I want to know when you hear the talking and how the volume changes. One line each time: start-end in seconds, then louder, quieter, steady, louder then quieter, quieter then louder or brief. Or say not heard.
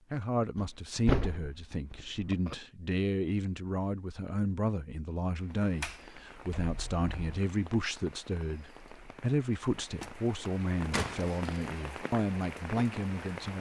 0.1-13.5 steady.